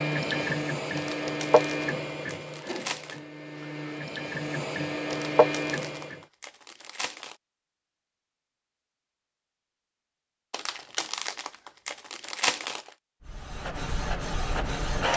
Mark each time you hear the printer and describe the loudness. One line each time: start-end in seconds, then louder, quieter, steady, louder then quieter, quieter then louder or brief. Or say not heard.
0.0-6.2 quieter then louder
13.2-15.1 brief.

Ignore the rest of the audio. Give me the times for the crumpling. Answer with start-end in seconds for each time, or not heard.
0.9-3.2, 5.1-7.3, 10.5-12.9.